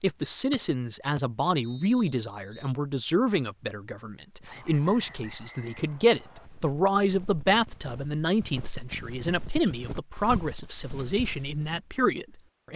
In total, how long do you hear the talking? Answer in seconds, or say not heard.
13 s.